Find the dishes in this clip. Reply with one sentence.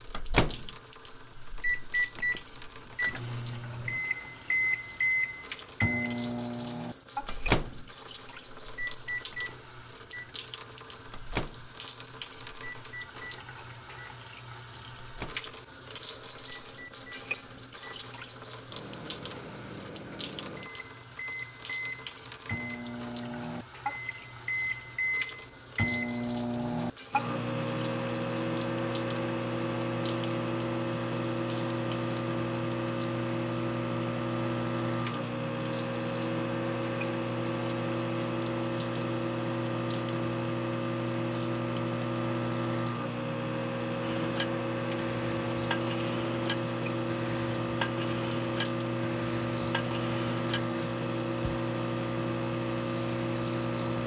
You can hear the dishes from 44.0 to 50.7 s.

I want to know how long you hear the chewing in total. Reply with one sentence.
The chewing can't be heard in this clip.